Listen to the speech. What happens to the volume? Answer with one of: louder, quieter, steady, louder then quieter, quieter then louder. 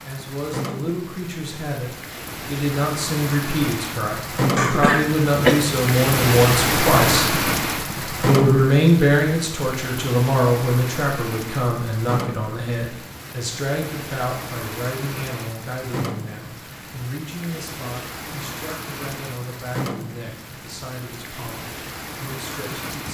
louder then quieter.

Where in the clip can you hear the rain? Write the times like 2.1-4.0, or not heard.
0.0-23.0.